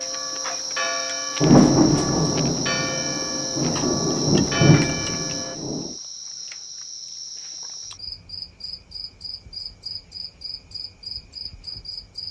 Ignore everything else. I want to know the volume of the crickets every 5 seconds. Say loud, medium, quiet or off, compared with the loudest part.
loud, medium, medium.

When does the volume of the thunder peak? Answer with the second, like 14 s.
2 s.